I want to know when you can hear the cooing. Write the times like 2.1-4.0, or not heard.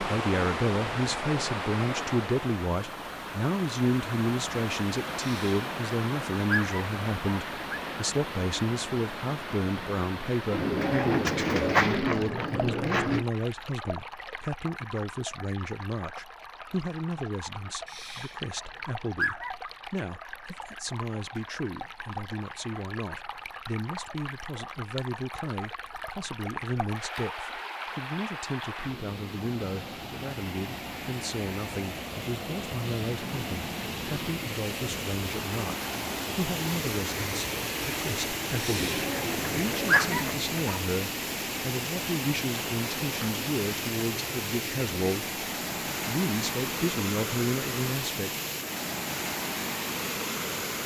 10.5-13.2, 38.6-40.5.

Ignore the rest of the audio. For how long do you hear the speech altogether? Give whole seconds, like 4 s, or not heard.
48 s.